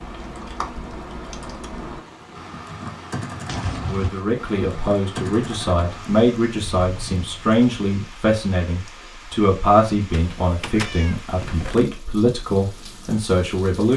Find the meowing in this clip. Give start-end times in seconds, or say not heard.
3.5-4.1, 10.1-11.9.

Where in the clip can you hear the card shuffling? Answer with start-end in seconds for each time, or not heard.
not heard.